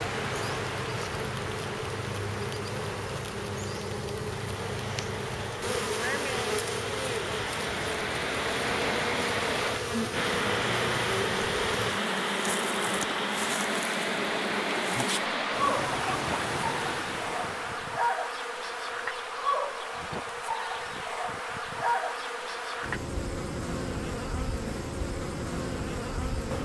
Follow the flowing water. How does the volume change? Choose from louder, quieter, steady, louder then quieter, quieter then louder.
louder.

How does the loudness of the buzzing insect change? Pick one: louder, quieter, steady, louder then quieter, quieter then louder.
steady.